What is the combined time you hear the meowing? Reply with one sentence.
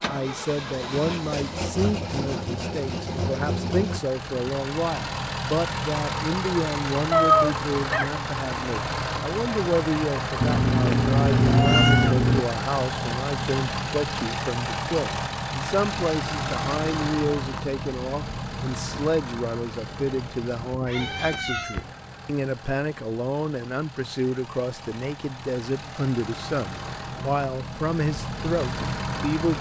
The meowing can be heard for 4 seconds in total.